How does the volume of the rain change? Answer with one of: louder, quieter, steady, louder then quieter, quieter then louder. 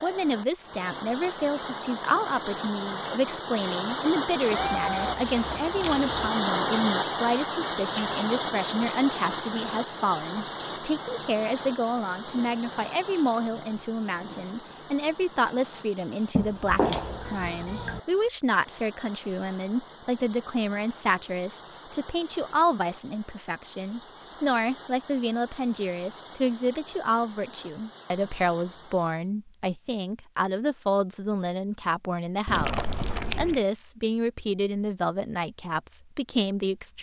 quieter.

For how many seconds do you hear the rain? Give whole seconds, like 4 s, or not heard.
29 s.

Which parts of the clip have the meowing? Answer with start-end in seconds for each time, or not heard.
4.5-6.3, 16.4-18.0, 32.5-33.6.